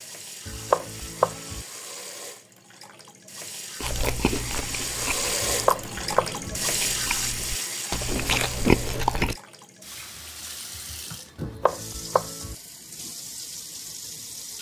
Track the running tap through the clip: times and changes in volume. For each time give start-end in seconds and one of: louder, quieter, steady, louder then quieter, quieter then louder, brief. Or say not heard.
0.0-14.5 louder then quieter.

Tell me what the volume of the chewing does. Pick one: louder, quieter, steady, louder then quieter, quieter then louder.
quieter then louder.